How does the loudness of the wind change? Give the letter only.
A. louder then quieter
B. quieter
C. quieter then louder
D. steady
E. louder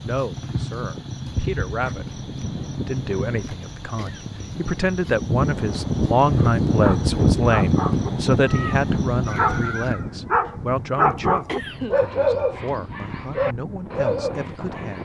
A.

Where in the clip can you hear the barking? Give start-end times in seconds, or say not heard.
6.8-15.0.